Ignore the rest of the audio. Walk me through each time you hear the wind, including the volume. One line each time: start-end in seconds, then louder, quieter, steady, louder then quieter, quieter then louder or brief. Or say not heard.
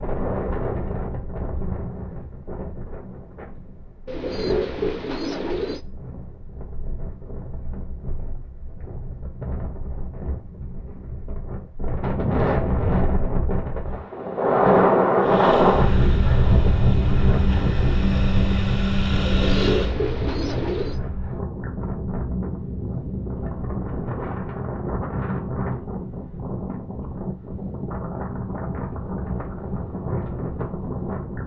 0.0-31.4 louder then quieter.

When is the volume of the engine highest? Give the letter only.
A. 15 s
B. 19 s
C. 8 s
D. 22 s
B.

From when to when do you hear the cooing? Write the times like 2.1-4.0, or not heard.
4.0-5.8, 19.2-21.0.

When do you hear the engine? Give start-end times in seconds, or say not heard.
15.2-19.9.